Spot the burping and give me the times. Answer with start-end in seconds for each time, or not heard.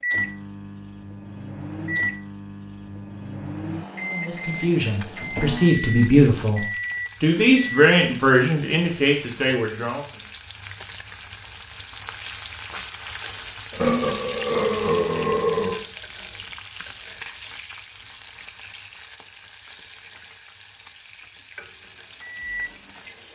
13.7-15.8.